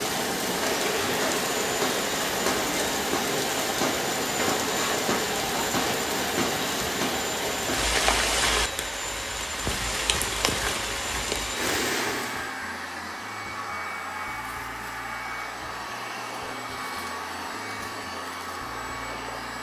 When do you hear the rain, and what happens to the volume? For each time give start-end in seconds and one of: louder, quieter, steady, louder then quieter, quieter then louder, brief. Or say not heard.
0.0-12.6 steady.